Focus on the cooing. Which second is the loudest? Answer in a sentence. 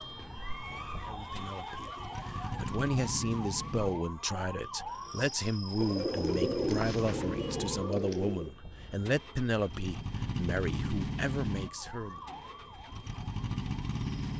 The volume of the cooing peaks at 7 seconds.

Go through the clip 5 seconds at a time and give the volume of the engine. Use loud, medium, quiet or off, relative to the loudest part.
medium, medium, loud.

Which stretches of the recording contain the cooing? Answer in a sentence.
You can hear the cooing from 5.8 to 8.5 s.